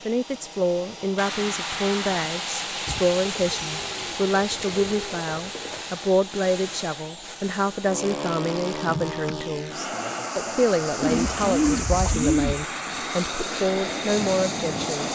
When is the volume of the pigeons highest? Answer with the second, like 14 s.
12 s.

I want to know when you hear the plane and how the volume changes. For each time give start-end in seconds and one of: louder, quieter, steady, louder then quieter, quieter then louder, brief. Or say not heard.
0.0-15.1 steady.